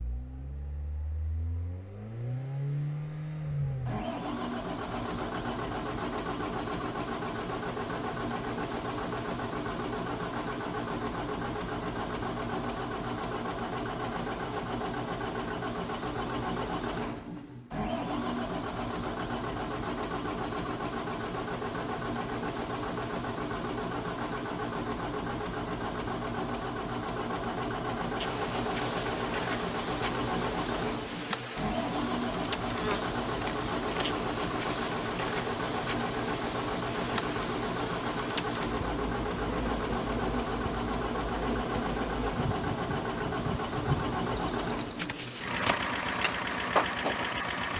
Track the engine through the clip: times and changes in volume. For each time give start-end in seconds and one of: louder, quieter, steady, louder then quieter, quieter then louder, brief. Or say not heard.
0.0-47.7 steady.